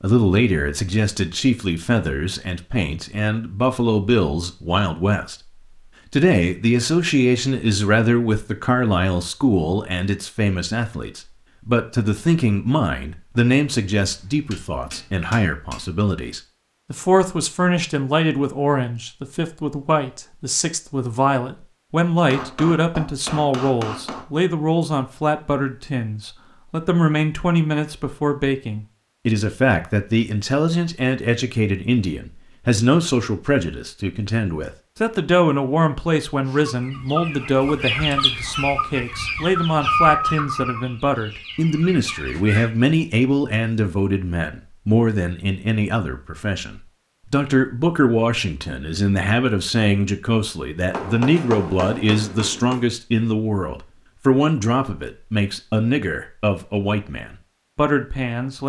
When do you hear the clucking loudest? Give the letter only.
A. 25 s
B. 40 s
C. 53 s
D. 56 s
B.